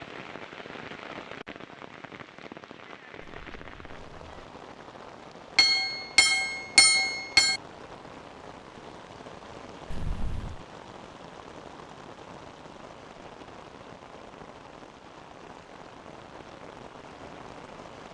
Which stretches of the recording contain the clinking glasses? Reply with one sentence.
The clinking glasses can be heard from 5.5 to 7.6 s.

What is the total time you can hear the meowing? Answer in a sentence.
You can hear the meowing for 2 seconds altogether.